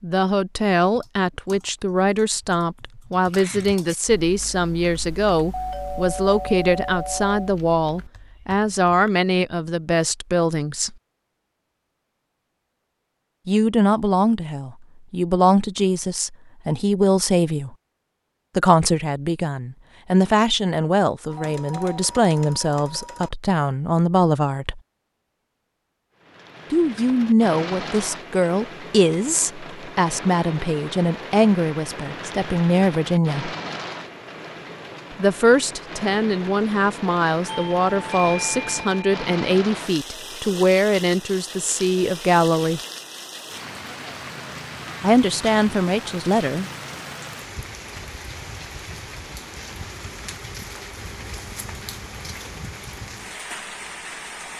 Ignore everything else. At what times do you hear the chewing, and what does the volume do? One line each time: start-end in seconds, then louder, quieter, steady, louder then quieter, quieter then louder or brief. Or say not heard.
not heard.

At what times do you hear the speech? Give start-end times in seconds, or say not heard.
0.0-10.9, 13.4-17.8, 18.6-24.8, 26.7-33.5, 35.1-42.8, 45.0-46.7.